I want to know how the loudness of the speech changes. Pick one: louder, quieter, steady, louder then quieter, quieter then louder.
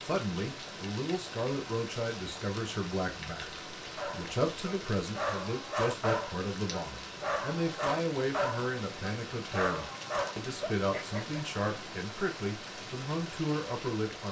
steady.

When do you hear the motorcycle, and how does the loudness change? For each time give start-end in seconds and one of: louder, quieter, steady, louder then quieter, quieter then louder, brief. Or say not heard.
not heard.